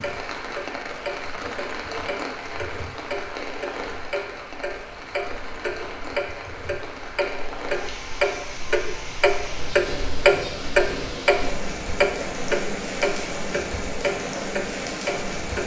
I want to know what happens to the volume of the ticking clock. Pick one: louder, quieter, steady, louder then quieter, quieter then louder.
louder then quieter.